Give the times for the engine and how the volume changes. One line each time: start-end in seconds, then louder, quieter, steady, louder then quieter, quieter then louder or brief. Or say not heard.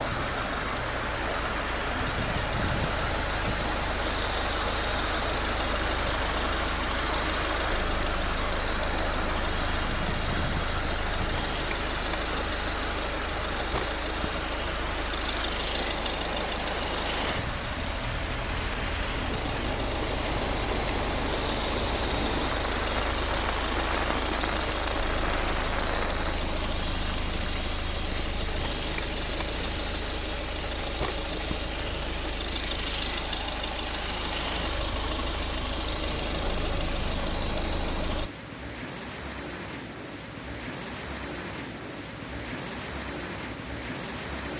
0.0-38.3 steady.